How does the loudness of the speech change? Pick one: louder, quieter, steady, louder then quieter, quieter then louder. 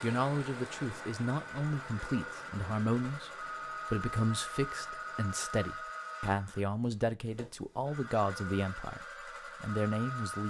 steady.